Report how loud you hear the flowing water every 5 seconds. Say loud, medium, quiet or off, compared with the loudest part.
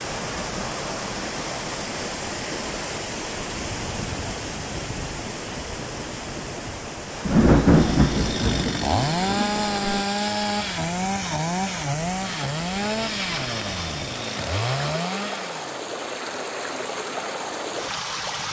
loud, loud, medium, loud.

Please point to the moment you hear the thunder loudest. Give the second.
8 s.